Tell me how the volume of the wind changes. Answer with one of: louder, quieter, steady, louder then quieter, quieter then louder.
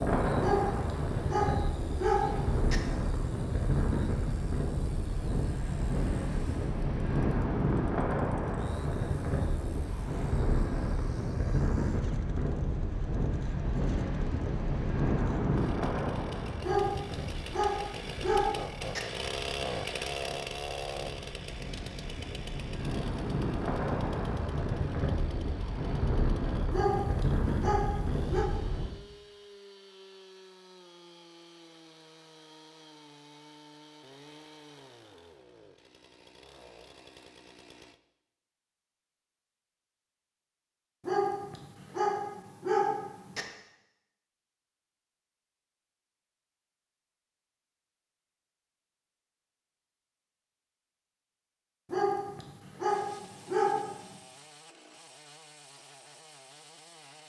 quieter then louder.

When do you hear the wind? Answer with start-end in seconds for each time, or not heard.
0.0-28.9.